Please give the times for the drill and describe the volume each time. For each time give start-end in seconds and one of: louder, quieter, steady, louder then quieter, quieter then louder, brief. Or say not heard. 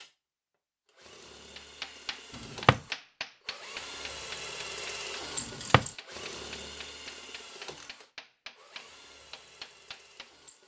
0.0-10.6 louder then quieter.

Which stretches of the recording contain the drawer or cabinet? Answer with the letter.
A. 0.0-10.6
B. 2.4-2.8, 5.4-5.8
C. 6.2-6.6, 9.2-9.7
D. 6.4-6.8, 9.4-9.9
B.